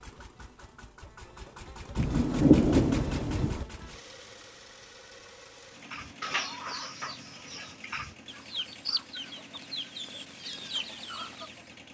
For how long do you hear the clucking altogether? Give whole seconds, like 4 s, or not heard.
6 s.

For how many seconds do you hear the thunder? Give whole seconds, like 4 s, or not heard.
2 s.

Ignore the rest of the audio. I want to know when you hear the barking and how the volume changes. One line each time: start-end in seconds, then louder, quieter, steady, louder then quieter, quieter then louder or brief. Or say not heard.
not heard.